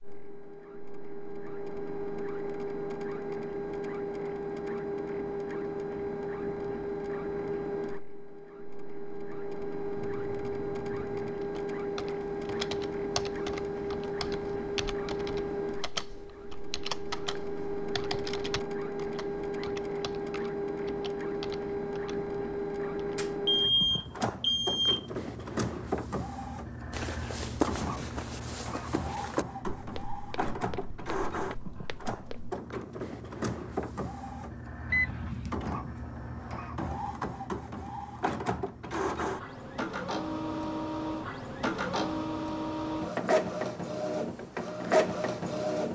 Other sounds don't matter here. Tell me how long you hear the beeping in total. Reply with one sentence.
You can hear the beeping for 4 seconds altogether.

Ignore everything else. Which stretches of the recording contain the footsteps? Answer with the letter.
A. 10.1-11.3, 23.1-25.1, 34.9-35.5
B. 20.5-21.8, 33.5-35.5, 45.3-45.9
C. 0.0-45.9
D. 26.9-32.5
D.